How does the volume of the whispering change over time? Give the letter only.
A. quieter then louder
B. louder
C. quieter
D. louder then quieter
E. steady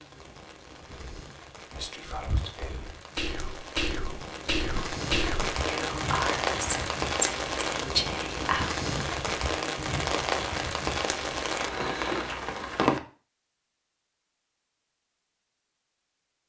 B.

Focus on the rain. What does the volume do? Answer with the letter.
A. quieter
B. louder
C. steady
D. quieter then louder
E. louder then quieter
B.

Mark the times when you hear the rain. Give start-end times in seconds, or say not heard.
0.0-13.0.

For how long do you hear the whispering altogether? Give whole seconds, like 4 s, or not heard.
8 s.